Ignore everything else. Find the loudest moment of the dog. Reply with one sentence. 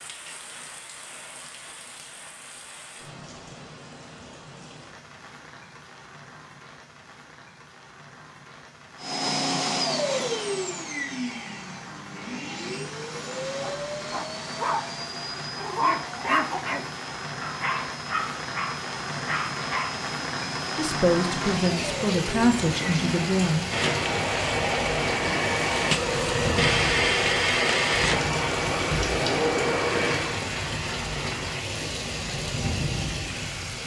The loudest moment of the dog is at 16 seconds.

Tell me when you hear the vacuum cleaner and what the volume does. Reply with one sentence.
The vacuum cleaner can be heard from 9.0 to 30.4 s, getting quieter then louder.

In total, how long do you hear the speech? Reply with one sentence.
The speech can be heard for 3 seconds in total.